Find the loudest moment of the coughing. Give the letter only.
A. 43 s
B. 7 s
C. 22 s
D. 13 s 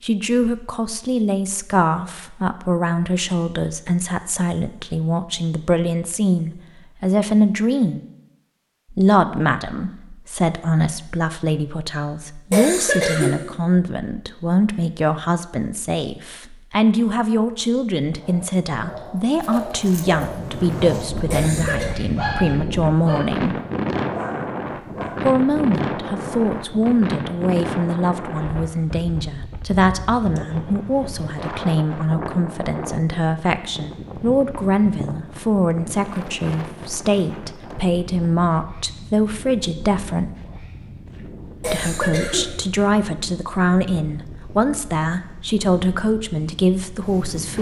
D.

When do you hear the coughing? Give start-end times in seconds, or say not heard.
12.5-13.3, 21.3-21.9, 41.6-42.5.